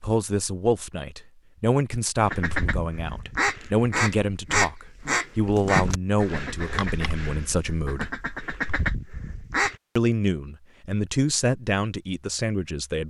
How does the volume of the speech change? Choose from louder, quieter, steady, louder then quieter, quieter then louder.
steady.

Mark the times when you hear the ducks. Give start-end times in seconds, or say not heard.
2.2-9.8.